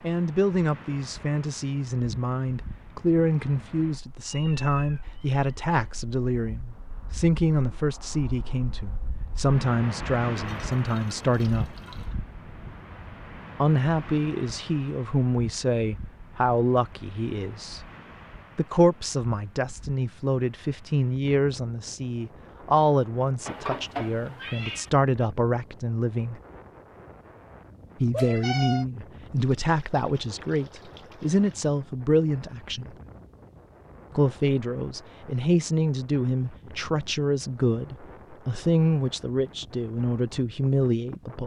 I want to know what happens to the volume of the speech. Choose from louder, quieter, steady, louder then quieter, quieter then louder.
steady.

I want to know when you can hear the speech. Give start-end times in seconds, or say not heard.
0.0-11.8, 13.6-17.9, 18.6-26.4, 28.0-33.0, 34.1-41.4.